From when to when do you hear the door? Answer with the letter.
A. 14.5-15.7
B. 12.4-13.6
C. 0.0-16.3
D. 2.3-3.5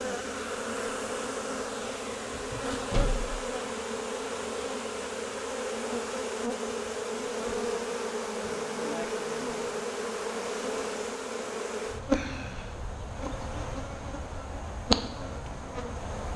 D.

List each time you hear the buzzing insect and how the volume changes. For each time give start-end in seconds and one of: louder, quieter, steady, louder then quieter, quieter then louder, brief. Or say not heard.
0.0-16.3 steady.